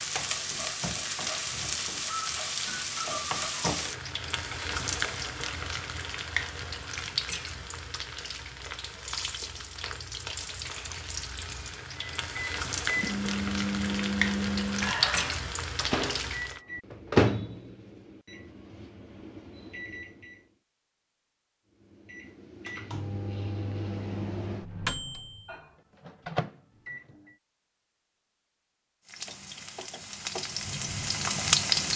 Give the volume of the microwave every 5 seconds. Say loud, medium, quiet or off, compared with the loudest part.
off, off, loud, loud, medium, medium, off.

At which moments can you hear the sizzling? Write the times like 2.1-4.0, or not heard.
0.0-16.6, 29.1-31.9.